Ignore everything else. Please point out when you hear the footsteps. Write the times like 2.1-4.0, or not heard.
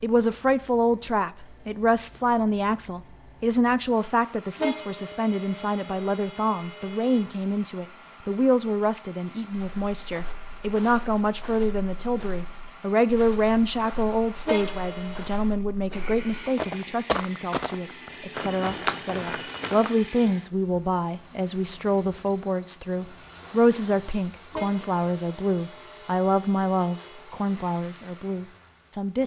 9.5-20.0.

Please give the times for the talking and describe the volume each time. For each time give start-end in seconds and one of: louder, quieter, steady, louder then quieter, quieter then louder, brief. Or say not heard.
0.0-29.2 steady.